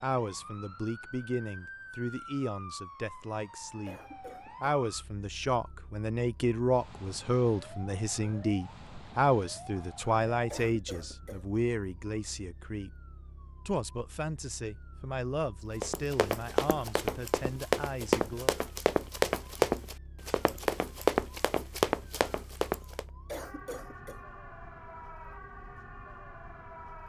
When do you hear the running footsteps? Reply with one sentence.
The running footsteps can be heard from 15.8 to 23.1 s.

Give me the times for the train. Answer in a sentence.
You can't hear the train here.